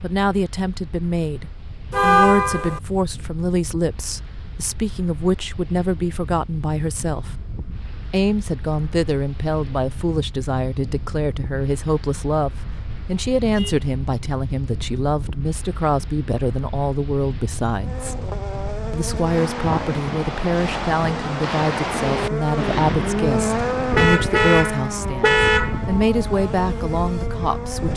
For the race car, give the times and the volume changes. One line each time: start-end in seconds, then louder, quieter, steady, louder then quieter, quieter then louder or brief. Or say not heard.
17.8-27.9 louder then quieter.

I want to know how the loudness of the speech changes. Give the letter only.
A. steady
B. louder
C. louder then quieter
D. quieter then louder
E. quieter
A.